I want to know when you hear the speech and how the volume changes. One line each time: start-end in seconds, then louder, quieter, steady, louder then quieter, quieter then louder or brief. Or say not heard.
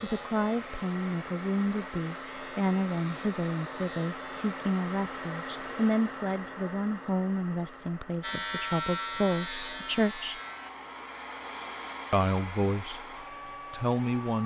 0.0-10.4 steady
12.1-13.1 brief
13.7-14.4 brief.